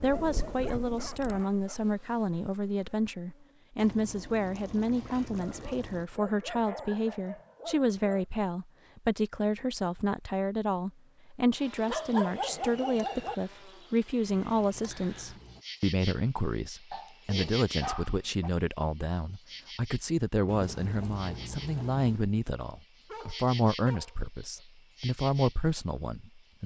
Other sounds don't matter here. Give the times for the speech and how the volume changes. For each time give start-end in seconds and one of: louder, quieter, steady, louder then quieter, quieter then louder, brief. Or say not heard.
0.0-26.6 steady.